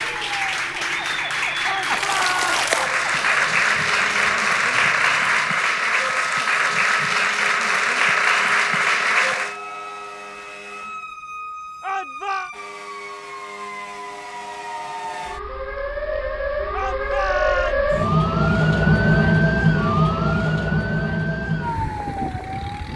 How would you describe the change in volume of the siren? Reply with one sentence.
The loudness of the siren goes up.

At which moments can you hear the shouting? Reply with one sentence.
You can hear the shouting from 1.6 to 2.6 s, from 11.8 to 12.5 s and from 16.7 to 18.1 s.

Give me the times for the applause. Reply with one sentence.
You can hear the applause from 0.0 to 9.6 s.